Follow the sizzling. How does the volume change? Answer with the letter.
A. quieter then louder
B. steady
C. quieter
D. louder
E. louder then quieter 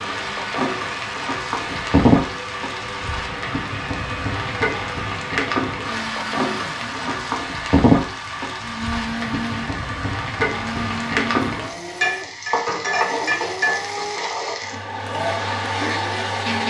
B.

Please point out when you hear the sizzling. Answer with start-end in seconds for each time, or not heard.
0.0-16.6.